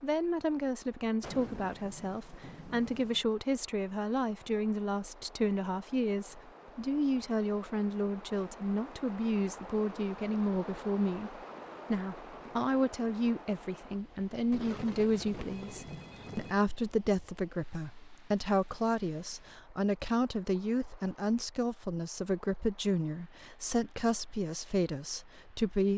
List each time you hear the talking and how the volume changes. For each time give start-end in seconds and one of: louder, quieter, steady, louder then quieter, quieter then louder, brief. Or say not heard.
0.0-25.9 steady.